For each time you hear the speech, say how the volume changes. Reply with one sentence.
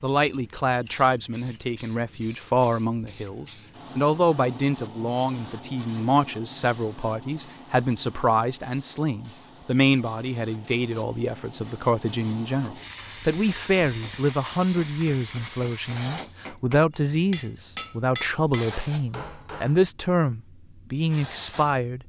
You can hear the speech from 0.0 to 22.0 s, at a steady volume.